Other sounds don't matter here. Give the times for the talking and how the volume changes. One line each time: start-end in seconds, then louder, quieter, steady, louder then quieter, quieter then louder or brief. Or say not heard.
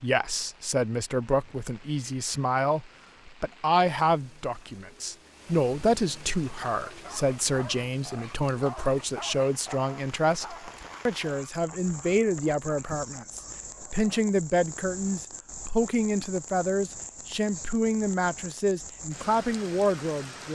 0.0-20.5 steady.